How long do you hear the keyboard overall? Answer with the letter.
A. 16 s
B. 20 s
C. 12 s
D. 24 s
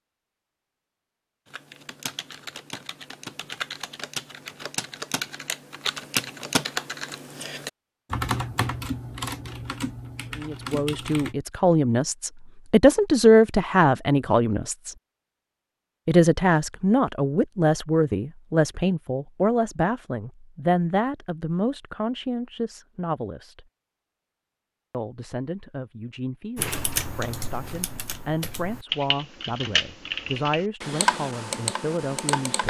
A.